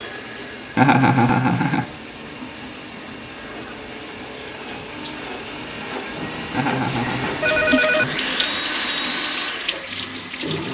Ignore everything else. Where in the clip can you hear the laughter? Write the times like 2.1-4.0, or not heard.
0.8-1.9, 6.5-7.3.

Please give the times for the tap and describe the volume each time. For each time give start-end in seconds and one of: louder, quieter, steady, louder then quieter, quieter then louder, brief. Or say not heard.
0.0-10.6 louder.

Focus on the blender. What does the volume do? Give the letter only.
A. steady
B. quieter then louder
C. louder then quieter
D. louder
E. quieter
D.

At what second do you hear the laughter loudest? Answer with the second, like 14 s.
1 s.